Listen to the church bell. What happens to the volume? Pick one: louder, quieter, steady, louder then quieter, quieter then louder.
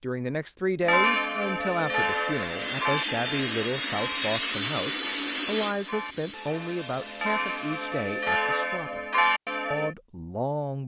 quieter then louder.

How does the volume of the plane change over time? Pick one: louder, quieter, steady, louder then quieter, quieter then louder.
quieter.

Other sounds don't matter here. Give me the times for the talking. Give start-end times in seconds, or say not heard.
0.0-9.0, 9.7-10.8.